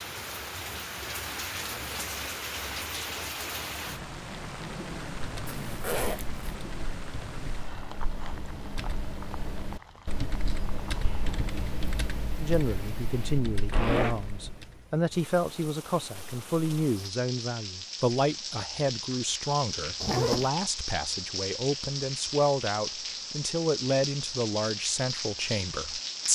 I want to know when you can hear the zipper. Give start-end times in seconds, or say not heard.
5.5-6.5, 13.7-14.2, 20.0-20.5.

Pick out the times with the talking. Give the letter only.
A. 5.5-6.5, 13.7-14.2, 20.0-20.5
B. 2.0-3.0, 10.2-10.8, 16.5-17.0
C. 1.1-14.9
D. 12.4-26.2
D.